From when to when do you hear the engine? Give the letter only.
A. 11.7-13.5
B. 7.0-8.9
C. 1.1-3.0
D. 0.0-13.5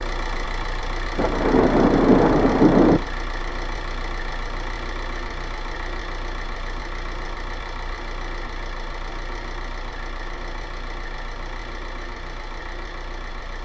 D.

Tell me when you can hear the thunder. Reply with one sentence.
The thunder can be heard from 1.1 to 3.0 s.